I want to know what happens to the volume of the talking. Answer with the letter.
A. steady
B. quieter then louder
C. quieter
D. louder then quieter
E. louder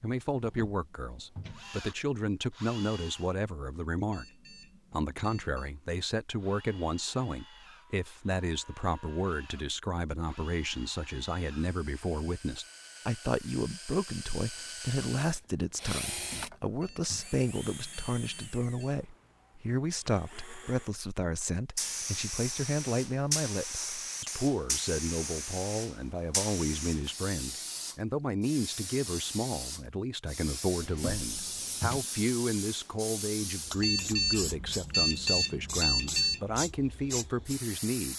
A.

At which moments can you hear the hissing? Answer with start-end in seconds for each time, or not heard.
21.8-38.1.